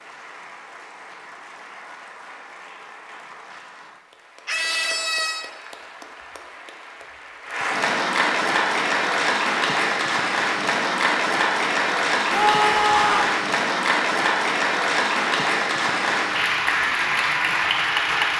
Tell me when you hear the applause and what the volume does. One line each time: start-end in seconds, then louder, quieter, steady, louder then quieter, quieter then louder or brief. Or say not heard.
0.0-18.3 louder.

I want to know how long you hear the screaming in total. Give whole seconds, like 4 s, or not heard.
2 s.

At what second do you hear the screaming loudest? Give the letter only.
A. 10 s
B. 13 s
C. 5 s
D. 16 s
B.